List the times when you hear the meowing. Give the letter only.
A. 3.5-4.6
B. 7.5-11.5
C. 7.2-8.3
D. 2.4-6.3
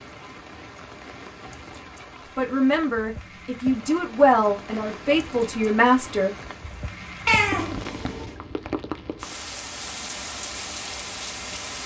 C.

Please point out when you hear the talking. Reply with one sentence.
You can hear the talking from 2.4 to 6.3 s.